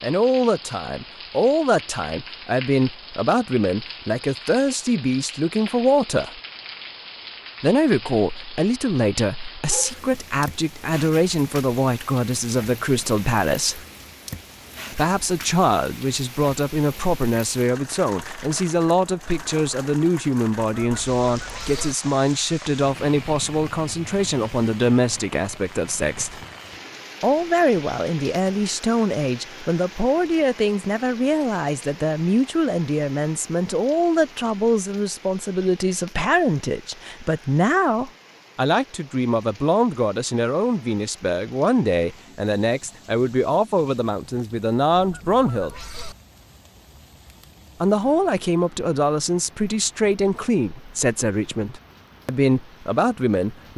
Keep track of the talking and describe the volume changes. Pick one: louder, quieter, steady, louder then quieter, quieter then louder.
steady.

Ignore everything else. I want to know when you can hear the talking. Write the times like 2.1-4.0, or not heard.
0.0-6.4, 7.6-13.8, 14.9-26.4, 27.2-45.8, 47.8-53.7.